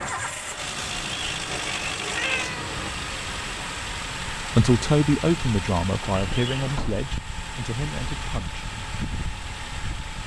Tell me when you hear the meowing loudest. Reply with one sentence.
The volume of the meowing peaks at 2 seconds.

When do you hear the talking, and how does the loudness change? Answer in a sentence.
The talking can be heard from 4.5 to 8.7 s, getting quieter.